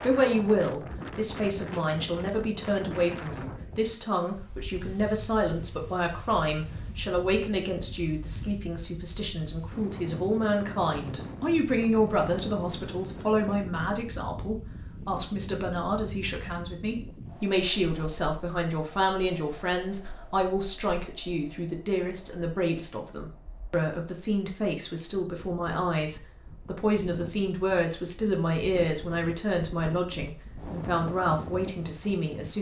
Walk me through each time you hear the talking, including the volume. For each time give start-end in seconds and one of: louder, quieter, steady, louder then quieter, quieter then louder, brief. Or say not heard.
0.0-32.5 steady.